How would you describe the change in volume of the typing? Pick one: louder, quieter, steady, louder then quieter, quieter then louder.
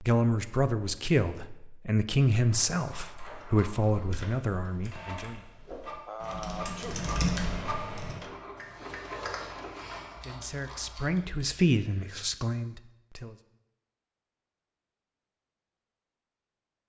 louder then quieter.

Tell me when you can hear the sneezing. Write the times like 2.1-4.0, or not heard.
5.7-7.0.